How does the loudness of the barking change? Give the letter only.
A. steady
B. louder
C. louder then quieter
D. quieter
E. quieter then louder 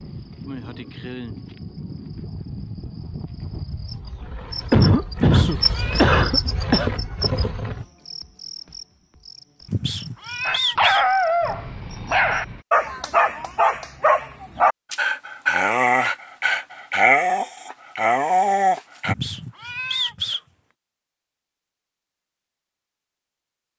A.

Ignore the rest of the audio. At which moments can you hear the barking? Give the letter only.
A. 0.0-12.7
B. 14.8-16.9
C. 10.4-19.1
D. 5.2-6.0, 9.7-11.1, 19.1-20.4
C.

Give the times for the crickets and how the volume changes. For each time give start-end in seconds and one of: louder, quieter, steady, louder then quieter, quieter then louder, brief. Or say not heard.
0.0-12.7 louder then quieter.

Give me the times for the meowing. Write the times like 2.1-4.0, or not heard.
5.2-6.0, 9.7-11.1, 19.1-20.4.